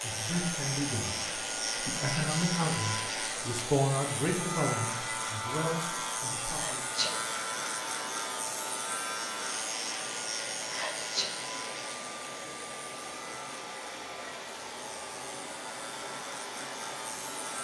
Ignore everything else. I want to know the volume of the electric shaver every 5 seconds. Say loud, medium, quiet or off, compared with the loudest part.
loud, loud, medium, medium.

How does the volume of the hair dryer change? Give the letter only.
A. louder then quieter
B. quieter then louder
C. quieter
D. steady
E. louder
D.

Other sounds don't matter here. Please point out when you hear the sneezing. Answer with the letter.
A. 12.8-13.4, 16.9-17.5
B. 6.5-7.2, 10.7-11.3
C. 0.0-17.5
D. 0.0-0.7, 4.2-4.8
B.